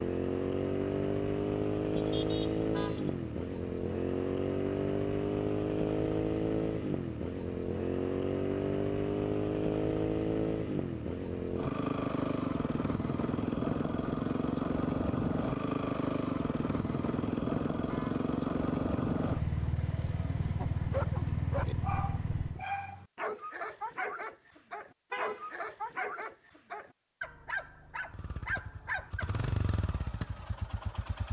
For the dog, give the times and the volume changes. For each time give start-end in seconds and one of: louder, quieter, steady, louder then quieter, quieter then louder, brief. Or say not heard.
20.6-29.3 steady.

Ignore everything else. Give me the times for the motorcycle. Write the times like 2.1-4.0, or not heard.
0.0-22.6, 28.1-31.2.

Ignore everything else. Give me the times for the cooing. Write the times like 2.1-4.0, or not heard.
not heard.